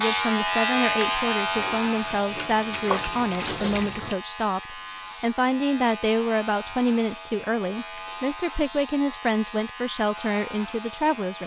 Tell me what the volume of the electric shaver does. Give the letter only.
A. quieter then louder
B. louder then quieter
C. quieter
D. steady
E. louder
C.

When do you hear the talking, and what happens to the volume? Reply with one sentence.
The talking can be heard from 0.0 to 11.4 s, at a steady volume.